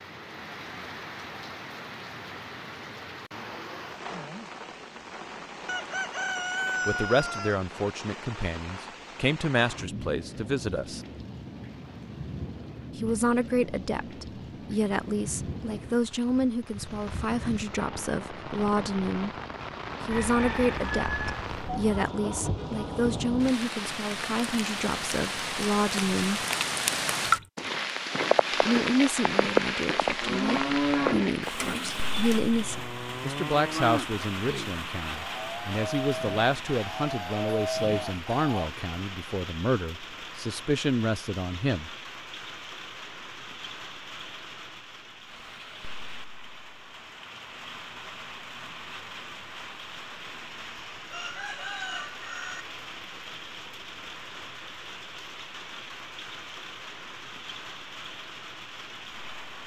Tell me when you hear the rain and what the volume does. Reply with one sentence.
The rain can be heard from 0.0 to 59.6 s, getting louder then quieter.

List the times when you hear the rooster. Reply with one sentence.
The rooster can be heard from 5.7 to 7.5 s, from 20.1 to 22.1 s and from 51.1 to 52.6 s.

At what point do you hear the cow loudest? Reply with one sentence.
The loudest moment of the cow is at 31 seconds.